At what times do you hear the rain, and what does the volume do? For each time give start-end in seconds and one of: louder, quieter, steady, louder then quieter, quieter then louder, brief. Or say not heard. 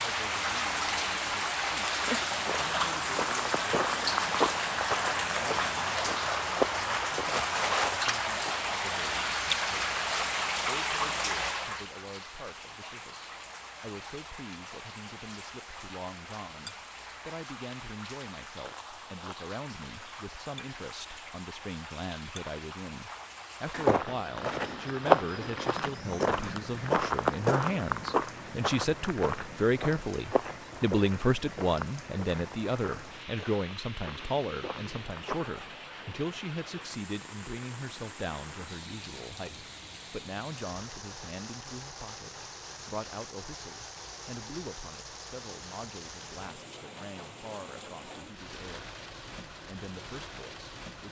0.0-51.0 quieter.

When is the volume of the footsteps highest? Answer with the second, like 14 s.
25 s.